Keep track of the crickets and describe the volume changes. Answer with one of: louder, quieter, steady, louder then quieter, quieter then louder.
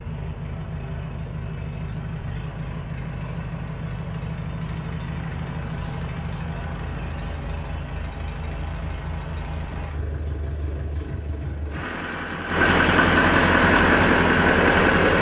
quieter then louder.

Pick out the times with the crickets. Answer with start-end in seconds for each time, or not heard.
5.6-15.1.